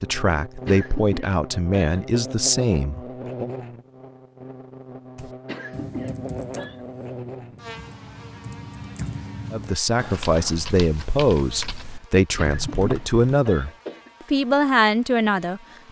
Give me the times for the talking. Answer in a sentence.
You can hear the talking from 0.0 to 3.5 s and from 9.5 to 15.6 s.